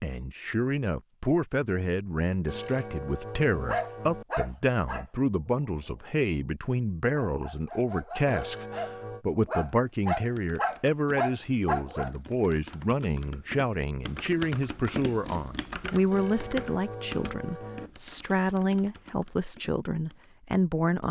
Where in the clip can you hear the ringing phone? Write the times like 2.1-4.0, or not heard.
2.5-4.2, 8.2-9.2, 16.1-17.9.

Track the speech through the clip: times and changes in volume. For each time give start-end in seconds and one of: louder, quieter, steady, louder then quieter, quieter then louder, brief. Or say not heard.
0.0-21.0 steady.